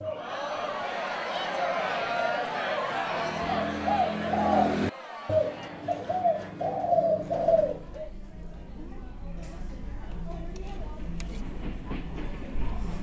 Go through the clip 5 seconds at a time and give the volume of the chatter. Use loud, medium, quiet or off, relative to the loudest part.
loud, quiet, medium.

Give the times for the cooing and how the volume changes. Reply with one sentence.
You can hear the cooing from 0.0 to 8.1 s, getting louder.